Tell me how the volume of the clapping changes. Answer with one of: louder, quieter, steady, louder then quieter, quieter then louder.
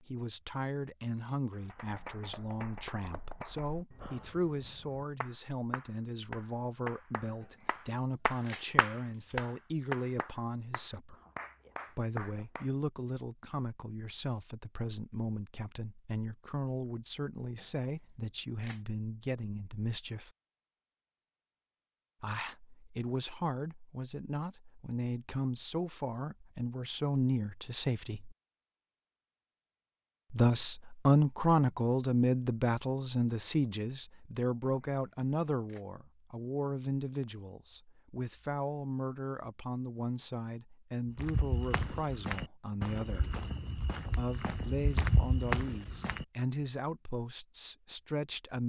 louder then quieter.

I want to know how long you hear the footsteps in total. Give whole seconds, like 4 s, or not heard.
5 s.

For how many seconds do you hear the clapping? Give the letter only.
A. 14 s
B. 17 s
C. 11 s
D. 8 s
C.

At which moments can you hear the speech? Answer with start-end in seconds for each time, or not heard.
0.0-11.2, 11.9-20.3, 22.2-28.4, 30.3-43.4, 44.1-48.6.